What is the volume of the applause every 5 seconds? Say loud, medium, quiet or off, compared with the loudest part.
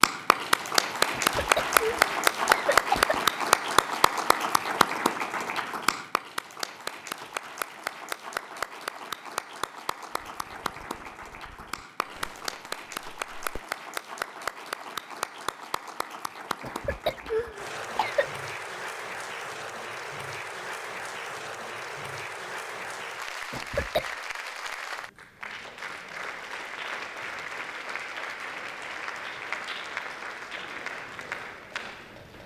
loud, medium, quiet, quiet, quiet, quiet, quiet.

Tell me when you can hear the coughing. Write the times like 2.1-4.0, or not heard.
1.1-3.3, 16.6-18.3, 23.5-24.1.